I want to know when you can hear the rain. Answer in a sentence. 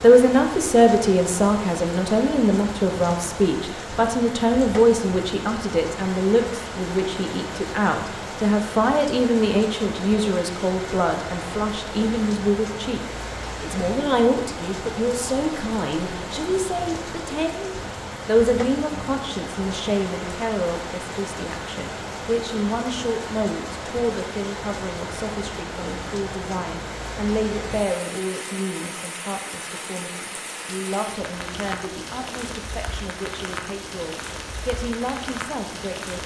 The rain can be heard from 0.0 to 36.2 s.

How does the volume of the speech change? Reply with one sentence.
The loudness of the speech goes down.